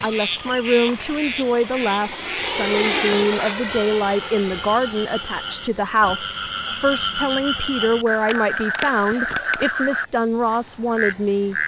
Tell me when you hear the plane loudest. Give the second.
3 s.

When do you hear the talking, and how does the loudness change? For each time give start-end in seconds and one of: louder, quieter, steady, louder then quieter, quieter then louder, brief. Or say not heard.
0.0-11.6 steady.